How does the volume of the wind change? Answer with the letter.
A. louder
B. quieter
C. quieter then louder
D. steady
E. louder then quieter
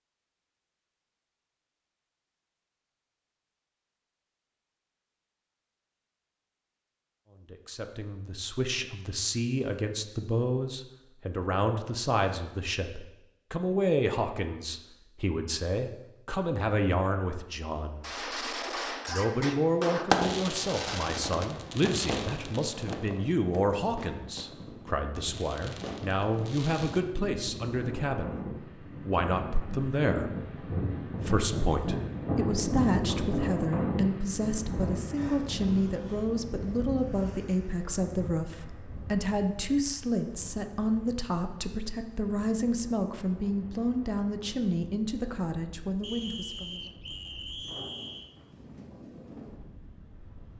E.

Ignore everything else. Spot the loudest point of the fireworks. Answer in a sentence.
The volume of the fireworks peaks at 20 seconds.